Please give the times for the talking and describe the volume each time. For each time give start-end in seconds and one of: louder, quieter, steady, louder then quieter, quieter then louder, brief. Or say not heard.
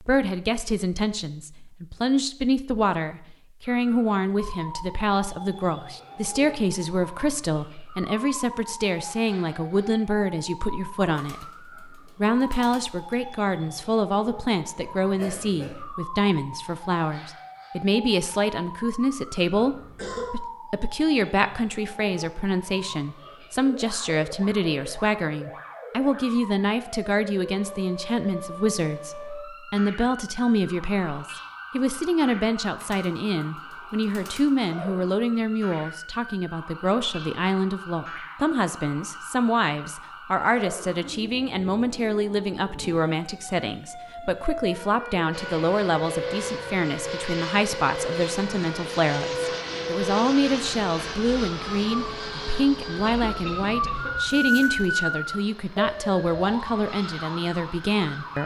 0.0-58.4 steady.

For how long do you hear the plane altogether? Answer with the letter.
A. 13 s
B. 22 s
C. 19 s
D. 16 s
A.